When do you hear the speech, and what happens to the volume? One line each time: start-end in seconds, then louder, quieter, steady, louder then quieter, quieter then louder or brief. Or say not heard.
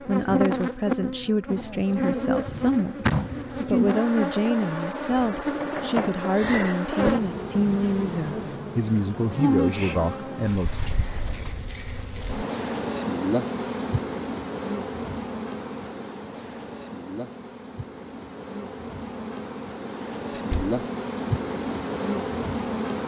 0.1-10.8 steady.